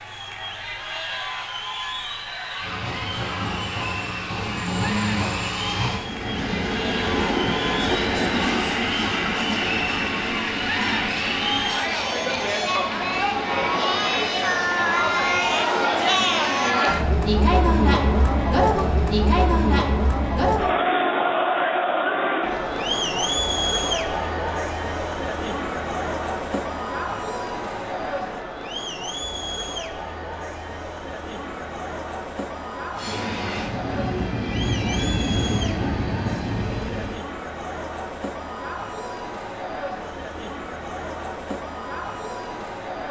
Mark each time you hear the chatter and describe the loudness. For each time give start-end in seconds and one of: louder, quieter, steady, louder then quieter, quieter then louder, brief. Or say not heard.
0.0-43.0 louder then quieter.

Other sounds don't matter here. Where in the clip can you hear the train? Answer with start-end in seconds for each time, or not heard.
2.5-16.9, 33.0-37.2.